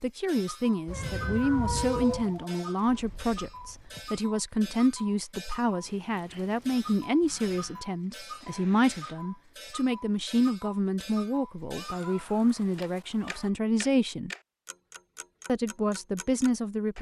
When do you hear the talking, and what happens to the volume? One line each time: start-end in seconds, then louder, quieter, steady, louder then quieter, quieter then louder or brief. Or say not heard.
0.0-14.3 steady
15.4-16.9 brief.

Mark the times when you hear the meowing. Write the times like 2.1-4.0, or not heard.
0.8-2.4, 7.5-9.2, 11.8-13.5.